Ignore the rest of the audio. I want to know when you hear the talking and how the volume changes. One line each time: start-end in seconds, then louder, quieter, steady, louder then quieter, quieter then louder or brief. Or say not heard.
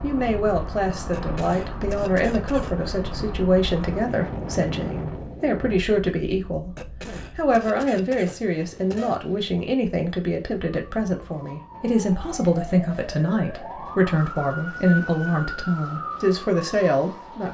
0.0-6.7 steady
7.3-17.4 steady.